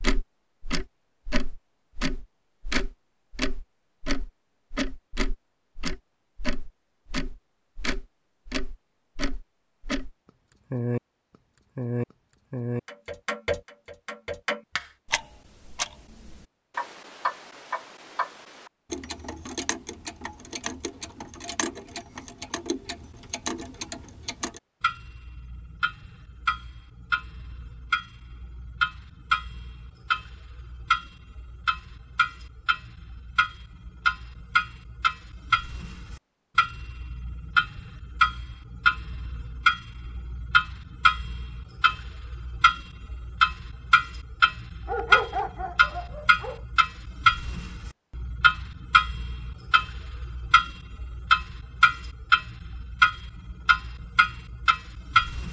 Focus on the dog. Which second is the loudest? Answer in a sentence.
The volume of the dog peaks at 45 seconds.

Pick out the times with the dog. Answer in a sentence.
You can hear the dog from 44.9 to 46.6 s.